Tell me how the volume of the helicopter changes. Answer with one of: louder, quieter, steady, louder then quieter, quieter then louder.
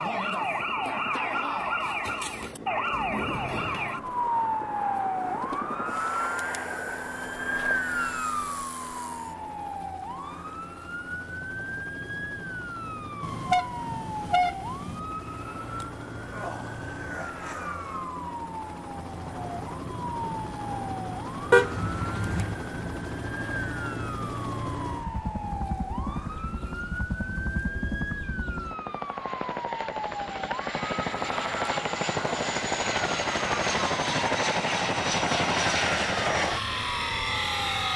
louder.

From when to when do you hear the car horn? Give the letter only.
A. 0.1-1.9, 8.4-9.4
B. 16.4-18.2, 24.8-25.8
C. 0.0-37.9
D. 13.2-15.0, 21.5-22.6
D.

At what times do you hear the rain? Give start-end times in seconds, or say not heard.
not heard.